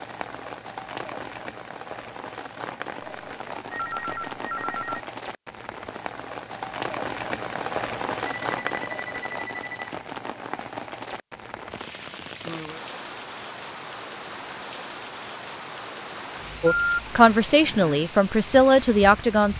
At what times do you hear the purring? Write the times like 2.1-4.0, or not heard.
not heard.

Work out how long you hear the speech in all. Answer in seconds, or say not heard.
3 s.